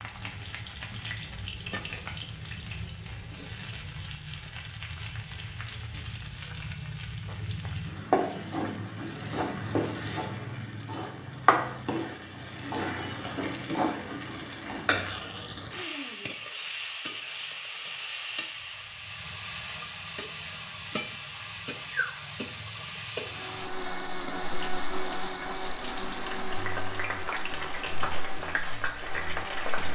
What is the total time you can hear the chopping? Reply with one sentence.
You can't hear the chopping here.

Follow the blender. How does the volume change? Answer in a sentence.
The loudness of the blender goes down.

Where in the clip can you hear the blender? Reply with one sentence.
The blender can be heard from 23.1 to 29.8 s.